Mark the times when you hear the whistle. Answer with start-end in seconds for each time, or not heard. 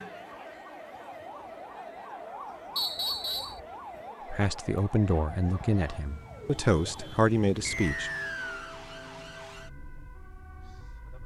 2.8-3.5, 7.7-8.8.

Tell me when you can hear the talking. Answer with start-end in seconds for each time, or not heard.
4.2-8.1.